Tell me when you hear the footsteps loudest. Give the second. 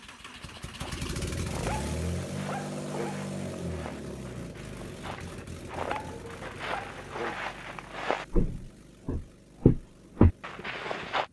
10 s.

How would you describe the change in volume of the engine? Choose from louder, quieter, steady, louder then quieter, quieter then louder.
quieter.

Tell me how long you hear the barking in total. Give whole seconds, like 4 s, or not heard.
3 s.